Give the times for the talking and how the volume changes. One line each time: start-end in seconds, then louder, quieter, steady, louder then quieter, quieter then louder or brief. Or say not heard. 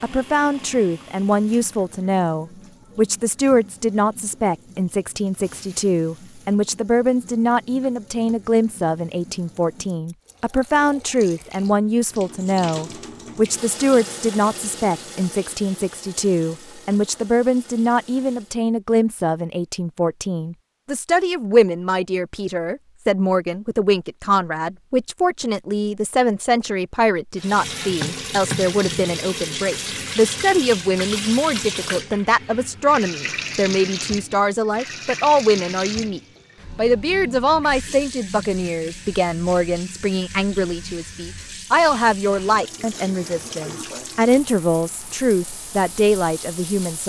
0.0-47.0 steady.